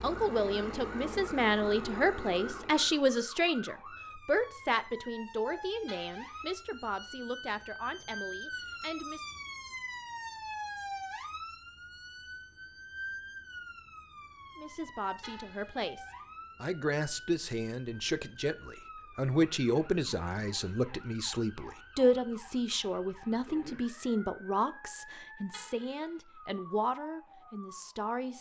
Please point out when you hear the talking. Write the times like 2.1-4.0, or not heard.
0.0-9.2, 14.6-28.3.